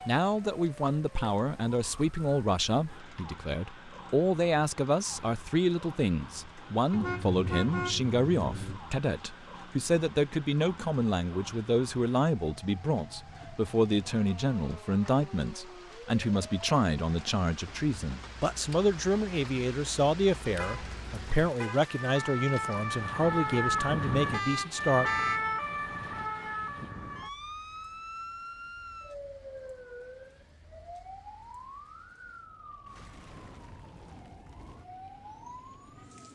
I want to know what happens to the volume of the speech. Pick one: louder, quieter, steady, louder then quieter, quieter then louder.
steady.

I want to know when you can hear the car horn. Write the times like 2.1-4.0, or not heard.
6.9-8.8, 20.6-21.9, 24.3-25.4.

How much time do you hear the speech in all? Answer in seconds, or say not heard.
25 s.